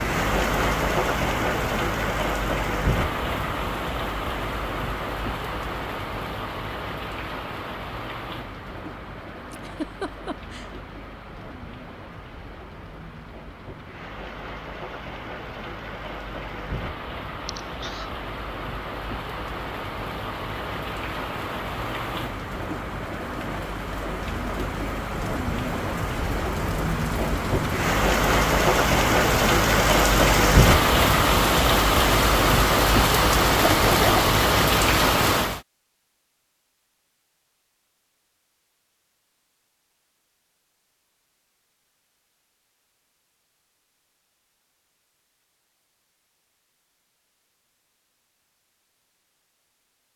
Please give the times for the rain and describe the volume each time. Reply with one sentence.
The rain can be heard from 0.0 to 35.6 s, getting quieter then louder.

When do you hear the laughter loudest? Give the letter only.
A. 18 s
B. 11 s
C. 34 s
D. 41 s
C.